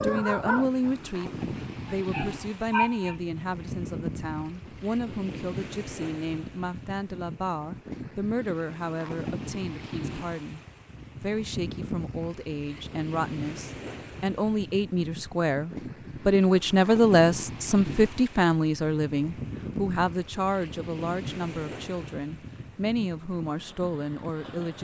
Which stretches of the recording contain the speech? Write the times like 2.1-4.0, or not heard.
0.0-10.6, 11.2-24.7.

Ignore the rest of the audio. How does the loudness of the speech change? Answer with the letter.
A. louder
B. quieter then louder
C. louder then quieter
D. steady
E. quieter
C.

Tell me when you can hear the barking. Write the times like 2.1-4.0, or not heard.
0.0-3.1.